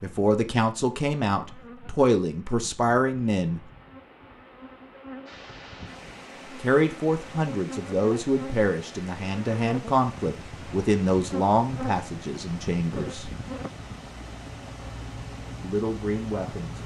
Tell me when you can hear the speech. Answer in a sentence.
The speech can be heard from 0.0 to 3.6 s, from 6.5 to 13.3 s and from 15.6 to 16.8 s.